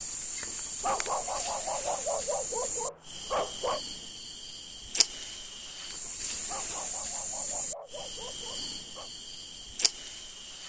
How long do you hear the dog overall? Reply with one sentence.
The dog can be heard for 6 seconds in total.